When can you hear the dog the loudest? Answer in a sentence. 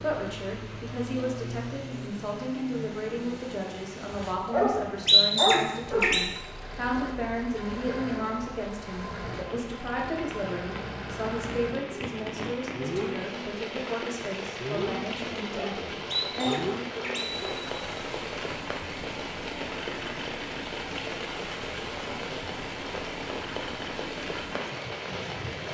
The loudest moment of the dog is at 5 seconds.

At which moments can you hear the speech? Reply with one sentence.
You can hear the speech from 0.0 to 16.6 s.